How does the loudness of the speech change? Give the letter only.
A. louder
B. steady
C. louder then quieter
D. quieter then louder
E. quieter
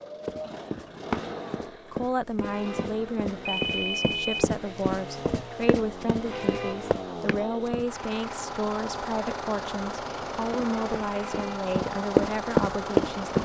B.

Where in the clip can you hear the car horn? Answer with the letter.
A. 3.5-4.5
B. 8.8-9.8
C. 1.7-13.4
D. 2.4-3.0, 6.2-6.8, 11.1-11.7
D.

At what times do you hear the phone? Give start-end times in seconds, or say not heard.
3.5-4.5.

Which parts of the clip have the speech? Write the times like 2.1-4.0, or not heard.
1.7-13.4.